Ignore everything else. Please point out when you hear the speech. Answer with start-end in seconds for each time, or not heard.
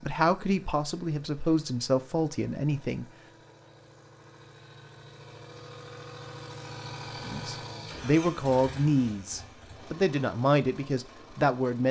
0.0-3.0, 7.2-11.8.